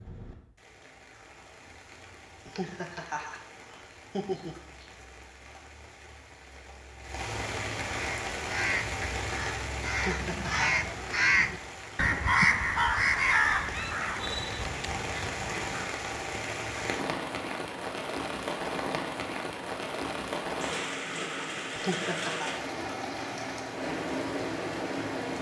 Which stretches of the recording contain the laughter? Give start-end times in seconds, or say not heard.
2.5-4.8, 9.9-10.7, 21.7-22.5.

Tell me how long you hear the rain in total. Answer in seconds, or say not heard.
25 s.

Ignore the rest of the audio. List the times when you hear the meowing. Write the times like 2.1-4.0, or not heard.
not heard.